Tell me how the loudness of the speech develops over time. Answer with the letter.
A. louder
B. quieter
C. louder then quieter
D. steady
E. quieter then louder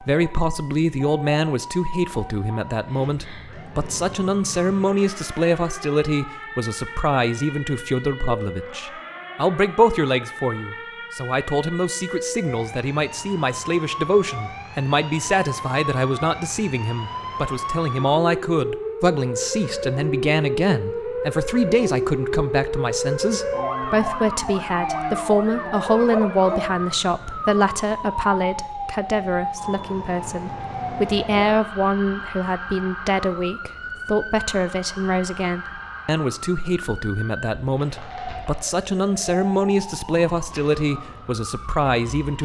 D.